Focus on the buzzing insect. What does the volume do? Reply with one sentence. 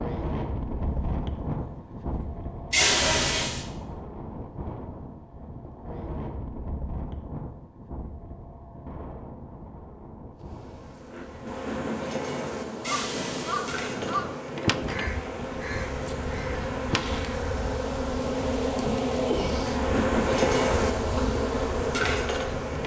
The volume of the buzzing insect goes up.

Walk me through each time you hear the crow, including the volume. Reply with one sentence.
The crow can be heard from 12.8 to 17.2 s, getting quieter.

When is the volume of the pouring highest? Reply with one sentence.
The volume of the pouring peaks at 3 seconds.